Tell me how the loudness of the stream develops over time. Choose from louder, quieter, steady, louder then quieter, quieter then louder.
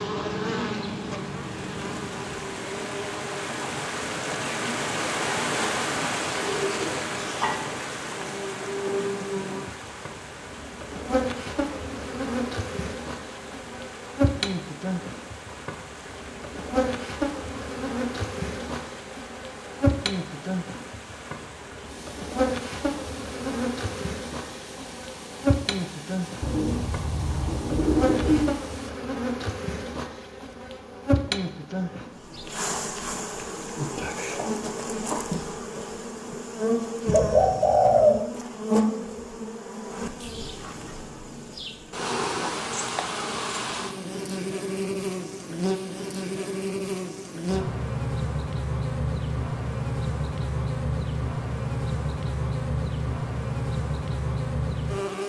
quieter.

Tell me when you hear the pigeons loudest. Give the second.
38 s.